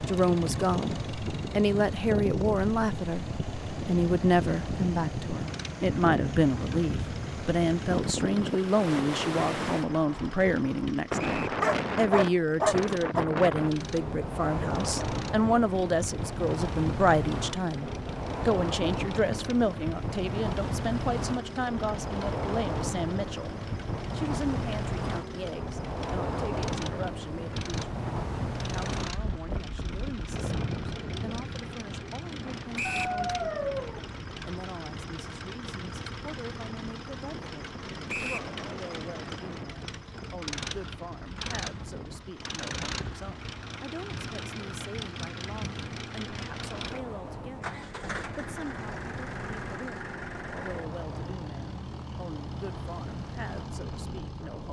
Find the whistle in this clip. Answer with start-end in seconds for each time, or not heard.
11.2-11.6, 32.8-33.2, 38.0-38.5.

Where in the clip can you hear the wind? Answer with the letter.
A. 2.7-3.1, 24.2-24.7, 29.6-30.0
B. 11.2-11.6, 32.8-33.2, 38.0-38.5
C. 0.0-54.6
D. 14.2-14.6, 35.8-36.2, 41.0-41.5
C.